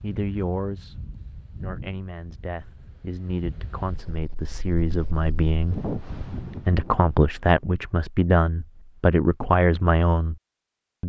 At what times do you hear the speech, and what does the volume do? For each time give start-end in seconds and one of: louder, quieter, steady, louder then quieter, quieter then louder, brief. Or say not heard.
0.0-0.9 brief
1.6-10.3 louder.